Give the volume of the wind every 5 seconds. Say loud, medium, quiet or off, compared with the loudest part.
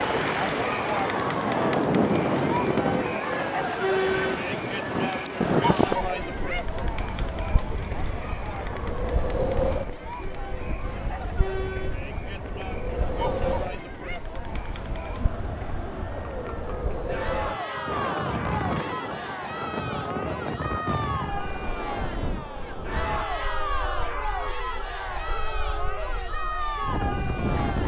loud, loud, medium, medium, medium, medium.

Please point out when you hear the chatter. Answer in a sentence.
You can hear the chatter from 0.0 to 27.8 s.